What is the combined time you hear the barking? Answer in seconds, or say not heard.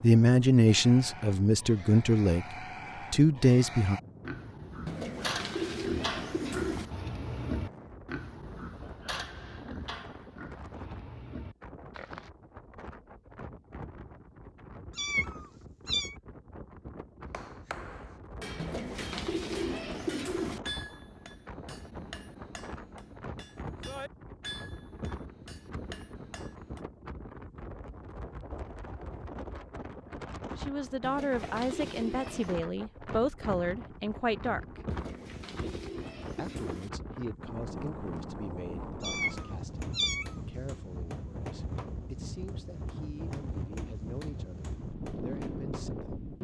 not heard.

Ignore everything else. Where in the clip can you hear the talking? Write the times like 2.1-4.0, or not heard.
0.0-4.0, 30.6-34.8, 36.4-46.2.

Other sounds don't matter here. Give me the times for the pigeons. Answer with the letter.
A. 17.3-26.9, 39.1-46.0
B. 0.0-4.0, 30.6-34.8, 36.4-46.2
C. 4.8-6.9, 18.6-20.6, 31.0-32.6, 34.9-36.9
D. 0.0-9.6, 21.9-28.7
C.